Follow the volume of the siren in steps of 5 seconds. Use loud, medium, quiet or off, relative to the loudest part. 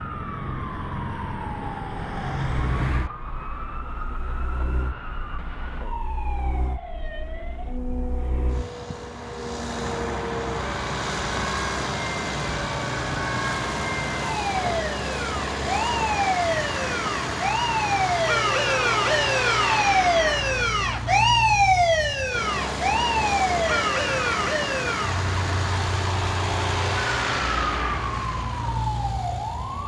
quiet, quiet, medium, loud, loud, medium.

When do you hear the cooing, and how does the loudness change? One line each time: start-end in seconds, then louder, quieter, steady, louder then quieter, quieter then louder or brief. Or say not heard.
not heard.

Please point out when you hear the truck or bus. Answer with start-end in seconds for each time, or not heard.
0.0-29.8.